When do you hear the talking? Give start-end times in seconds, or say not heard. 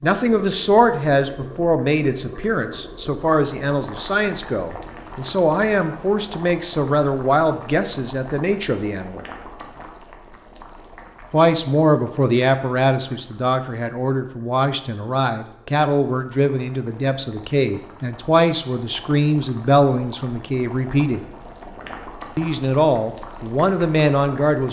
0.0-9.2, 11.3-21.2, 22.4-24.6.